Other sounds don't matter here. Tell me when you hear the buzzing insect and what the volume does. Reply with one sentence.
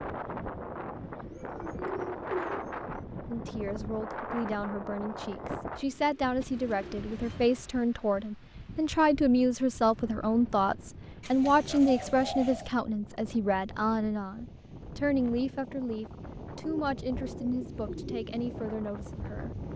The buzzing insect can't be heard in this clip.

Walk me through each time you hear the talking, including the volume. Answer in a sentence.
The talking can be heard from 3.2 to 19.6 s, getting louder then quieter.